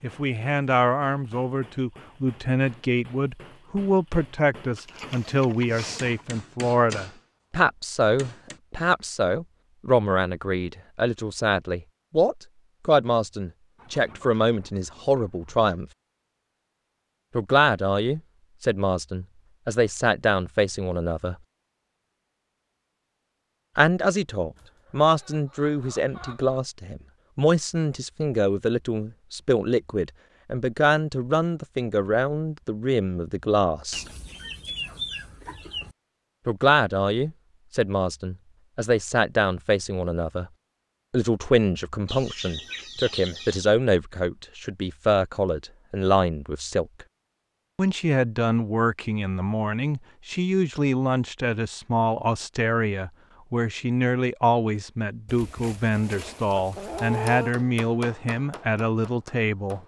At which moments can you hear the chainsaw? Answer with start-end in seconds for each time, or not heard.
not heard.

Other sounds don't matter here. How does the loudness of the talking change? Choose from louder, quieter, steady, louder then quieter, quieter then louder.
steady.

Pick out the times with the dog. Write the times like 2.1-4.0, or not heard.
not heard.